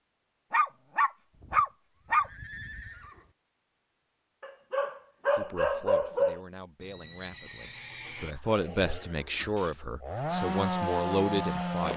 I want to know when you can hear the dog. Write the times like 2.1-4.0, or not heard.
0.5-2.3, 4.4-6.4, 8.2-9.8.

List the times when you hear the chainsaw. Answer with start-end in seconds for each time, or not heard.
8.4-11.9.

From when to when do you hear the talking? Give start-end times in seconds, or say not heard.
5.3-11.9.